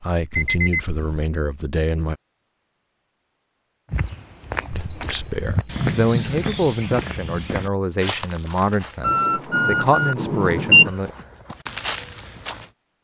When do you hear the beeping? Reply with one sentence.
The beeping can be heard from 0.3 to 1.3 s, from 4.8 to 5.9 s and from 9.0 to 10.9 s.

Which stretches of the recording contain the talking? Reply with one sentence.
You can hear the talking from 0.0 to 2.2 s and from 4.7 to 11.1 s.